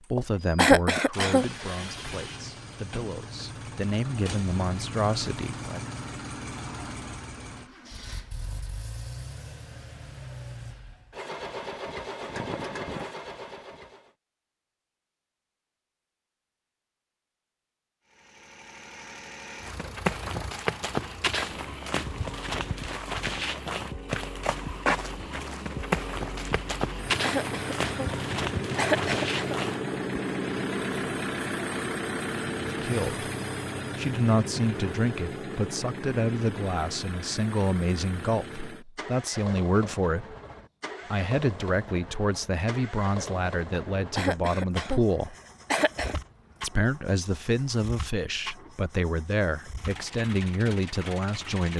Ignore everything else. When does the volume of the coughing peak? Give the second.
1 s.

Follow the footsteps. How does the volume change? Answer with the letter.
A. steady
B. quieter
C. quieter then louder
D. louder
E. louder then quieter
A.